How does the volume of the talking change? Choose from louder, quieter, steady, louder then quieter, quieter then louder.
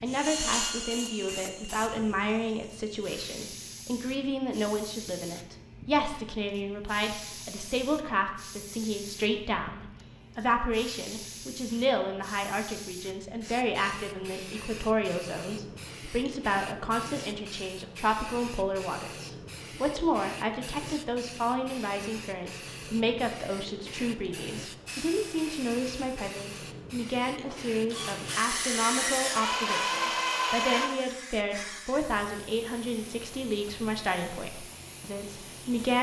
steady.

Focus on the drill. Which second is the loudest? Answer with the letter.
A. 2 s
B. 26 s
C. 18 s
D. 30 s
D.